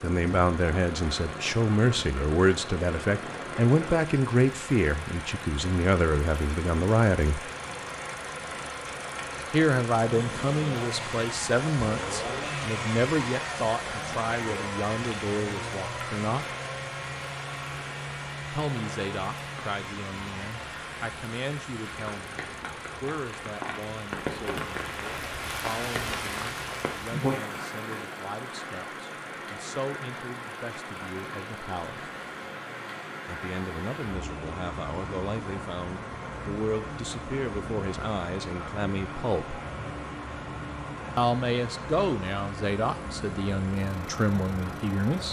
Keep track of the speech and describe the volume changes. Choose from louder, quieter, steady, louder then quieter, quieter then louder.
quieter then louder.